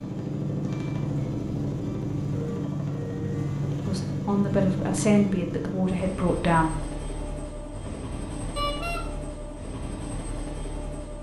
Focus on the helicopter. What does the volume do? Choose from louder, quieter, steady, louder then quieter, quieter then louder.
quieter.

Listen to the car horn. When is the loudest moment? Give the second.
9 s.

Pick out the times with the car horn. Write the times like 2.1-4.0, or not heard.
2.4-3.5, 8.6-9.0.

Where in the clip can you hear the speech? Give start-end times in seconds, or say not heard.
3.9-6.9.